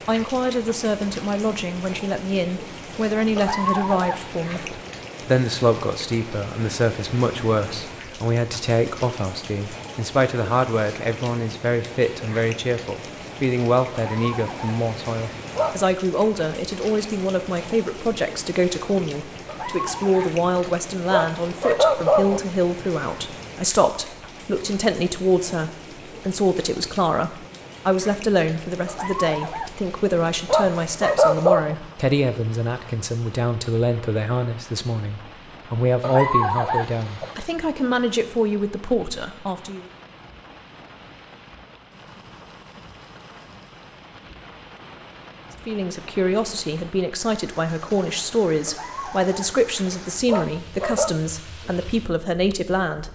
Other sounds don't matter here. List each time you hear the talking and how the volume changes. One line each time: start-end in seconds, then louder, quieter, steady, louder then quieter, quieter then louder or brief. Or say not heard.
0.1-39.9 steady
45.6-53.1 steady.